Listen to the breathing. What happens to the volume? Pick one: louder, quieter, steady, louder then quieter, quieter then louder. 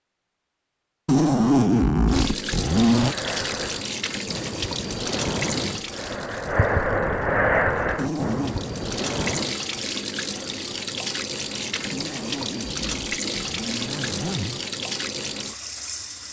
louder then quieter.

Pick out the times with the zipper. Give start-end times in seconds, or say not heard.
1.1-3.1, 8.0-8.6, 11.9-14.6.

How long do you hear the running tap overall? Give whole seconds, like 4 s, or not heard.
14 s.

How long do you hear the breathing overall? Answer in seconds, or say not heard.
7 s.